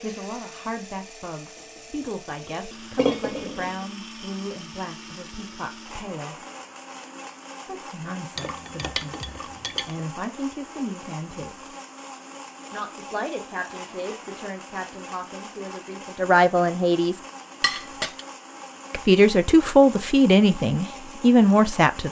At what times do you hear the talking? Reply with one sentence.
You can hear the talking from 0.0 to 6.3 s, from 7.7 to 11.8 s, from 12.7 to 17.2 s and from 18.9 to 22.0 s.